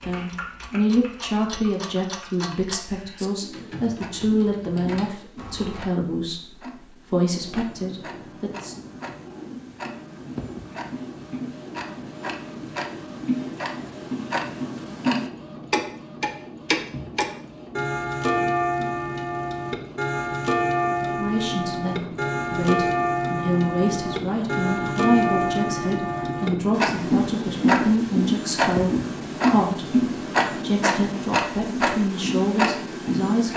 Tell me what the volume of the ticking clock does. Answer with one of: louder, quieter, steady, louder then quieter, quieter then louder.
louder.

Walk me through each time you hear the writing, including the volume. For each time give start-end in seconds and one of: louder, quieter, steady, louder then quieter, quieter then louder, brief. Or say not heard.
not heard.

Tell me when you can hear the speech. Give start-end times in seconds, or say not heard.
0.0-8.8, 21.0-33.5.